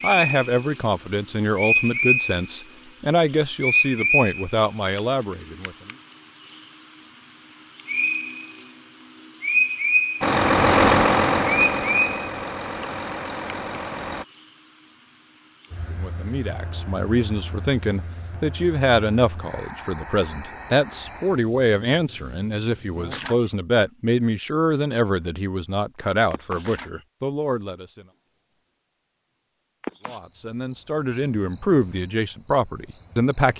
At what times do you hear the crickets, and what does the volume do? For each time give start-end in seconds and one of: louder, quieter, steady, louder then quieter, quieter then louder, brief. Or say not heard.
0.0-33.5 quieter.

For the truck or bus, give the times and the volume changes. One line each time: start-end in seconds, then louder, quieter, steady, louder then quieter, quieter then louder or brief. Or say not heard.
10.2-14.2 quieter.